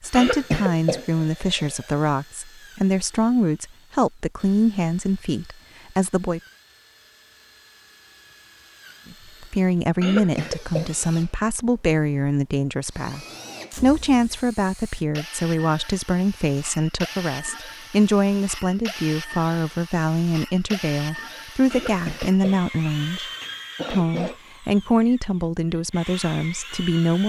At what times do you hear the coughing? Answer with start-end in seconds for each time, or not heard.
0.1-1.9, 10.0-10.9, 21.7-24.4.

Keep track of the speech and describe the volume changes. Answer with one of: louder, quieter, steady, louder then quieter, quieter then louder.
steady.